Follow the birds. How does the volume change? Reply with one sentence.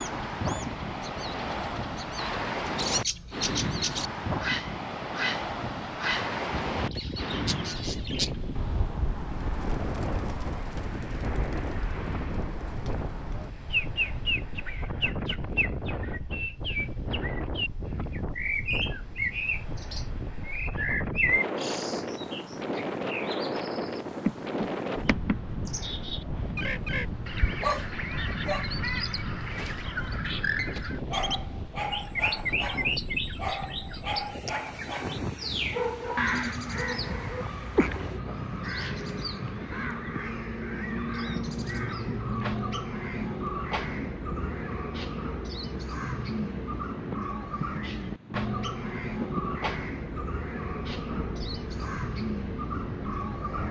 The loudness of the birds stays about the same.